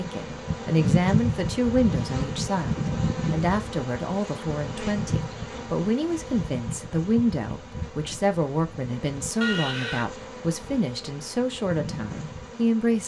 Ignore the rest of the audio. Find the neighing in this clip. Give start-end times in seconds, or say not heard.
9.4-10.1.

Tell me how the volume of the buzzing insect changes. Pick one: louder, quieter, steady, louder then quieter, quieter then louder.
quieter.